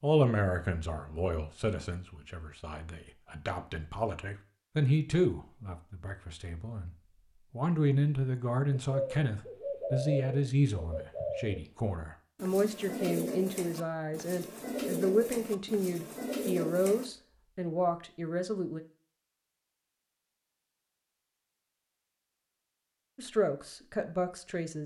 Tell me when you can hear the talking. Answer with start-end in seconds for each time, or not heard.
0.0-18.8, 23.1-24.8.